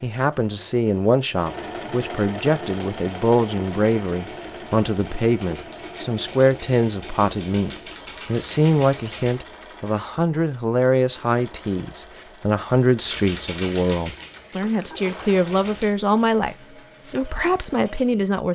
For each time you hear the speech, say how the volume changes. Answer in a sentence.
The speech can be heard from 0.0 to 18.5 s, at a steady volume.